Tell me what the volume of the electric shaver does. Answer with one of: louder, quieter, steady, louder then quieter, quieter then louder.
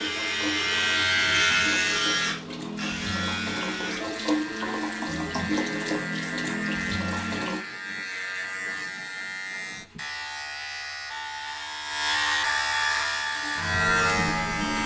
quieter then louder.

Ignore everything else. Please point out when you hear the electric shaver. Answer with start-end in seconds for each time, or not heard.
0.0-14.8.